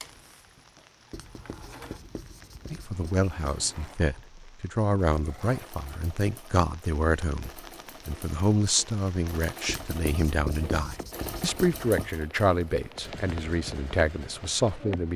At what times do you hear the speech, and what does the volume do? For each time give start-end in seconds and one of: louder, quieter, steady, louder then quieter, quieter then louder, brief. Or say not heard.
2.7-15.1 steady.